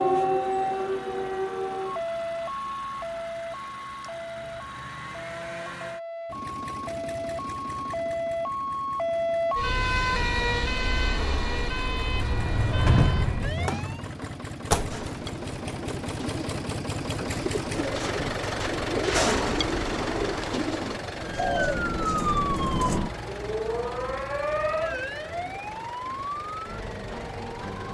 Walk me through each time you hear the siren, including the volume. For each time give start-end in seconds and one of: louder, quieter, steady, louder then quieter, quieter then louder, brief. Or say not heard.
0.0-14.1 quieter then louder
21.1-27.8 quieter.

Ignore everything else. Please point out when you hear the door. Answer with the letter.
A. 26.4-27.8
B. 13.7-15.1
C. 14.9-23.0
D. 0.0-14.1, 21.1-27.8
B.